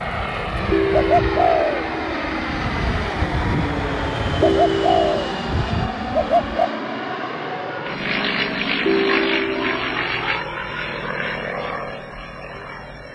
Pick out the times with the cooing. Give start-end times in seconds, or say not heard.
0.0-6.7.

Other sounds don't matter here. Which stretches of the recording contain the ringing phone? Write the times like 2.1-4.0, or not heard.
0.7-1.6, 4.4-5.3, 8.8-9.8.